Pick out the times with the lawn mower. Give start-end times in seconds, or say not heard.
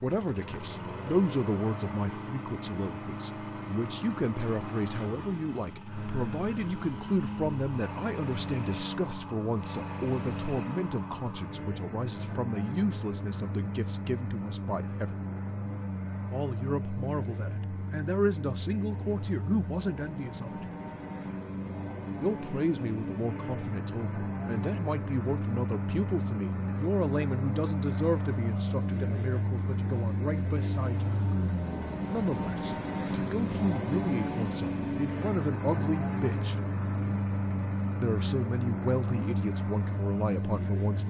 0.0-41.0.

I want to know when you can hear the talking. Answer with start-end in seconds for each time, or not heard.
0.0-15.2, 16.3-20.6, 22.2-31.1, 32.1-36.5, 38.0-41.0.